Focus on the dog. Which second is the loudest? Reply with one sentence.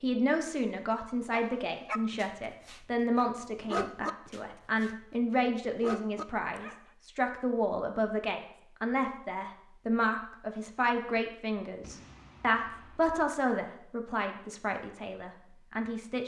The loudest moment of the dog is at 4 seconds.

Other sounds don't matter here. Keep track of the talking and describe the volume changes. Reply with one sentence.
The volume of the talking stays about the same.